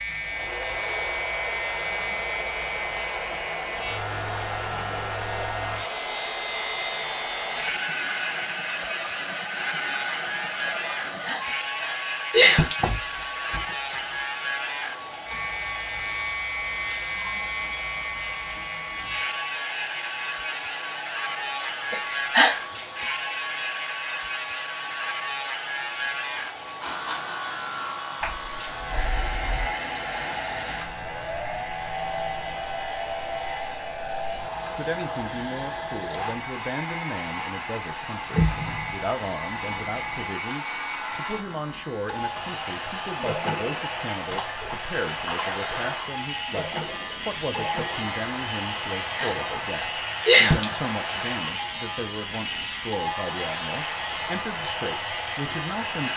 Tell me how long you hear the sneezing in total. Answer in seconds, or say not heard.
4 s.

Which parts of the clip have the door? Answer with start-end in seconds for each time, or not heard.
12.3-13.9, 28.2-29.7, 38.3-39.0.